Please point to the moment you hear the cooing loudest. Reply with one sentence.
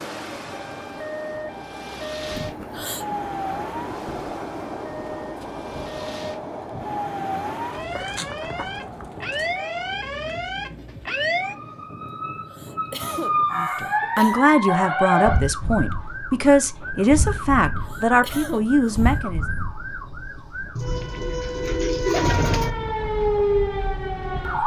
The volume of the cooing peaks at 22 seconds.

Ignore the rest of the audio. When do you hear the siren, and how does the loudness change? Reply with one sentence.
You can hear the siren from 0.0 to 24.6 s, getting louder.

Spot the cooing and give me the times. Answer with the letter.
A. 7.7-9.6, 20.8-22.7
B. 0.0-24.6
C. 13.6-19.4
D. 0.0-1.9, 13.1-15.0
A.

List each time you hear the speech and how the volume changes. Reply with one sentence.
You can hear the speech from 13.6 to 19.4 s, at a steady volume.